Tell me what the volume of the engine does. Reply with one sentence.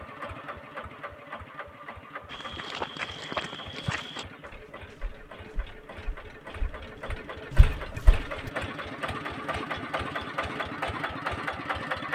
The volume of the engine goes up.